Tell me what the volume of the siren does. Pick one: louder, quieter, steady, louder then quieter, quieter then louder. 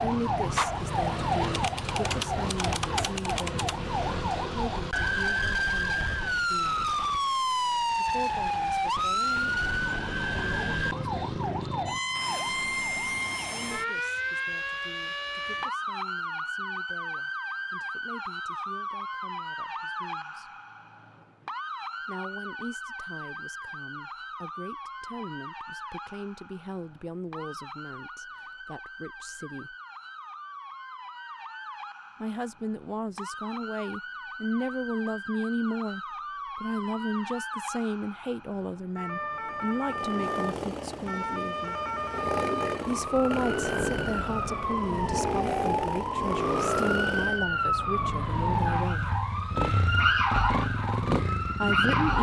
quieter then louder.